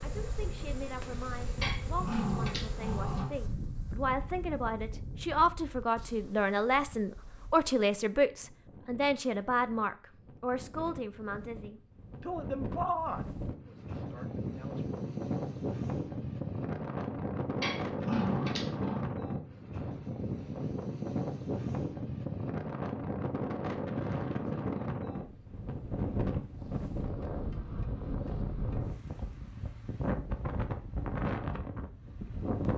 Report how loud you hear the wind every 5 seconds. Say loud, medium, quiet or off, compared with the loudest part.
medium, quiet, medium, loud, loud, loud, loud.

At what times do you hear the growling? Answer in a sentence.
The growling can be heard from 1.6 to 3.3 s and from 17.6 to 19.1 s.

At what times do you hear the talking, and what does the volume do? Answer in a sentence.
You can hear the talking from 0.0 to 14.9 s, getting louder then quieter.